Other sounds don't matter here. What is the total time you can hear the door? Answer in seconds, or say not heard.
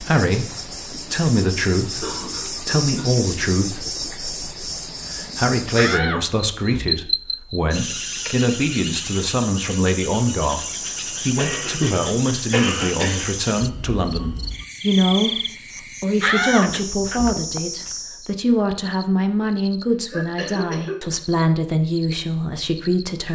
3 s.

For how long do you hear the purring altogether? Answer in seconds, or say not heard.
not heard.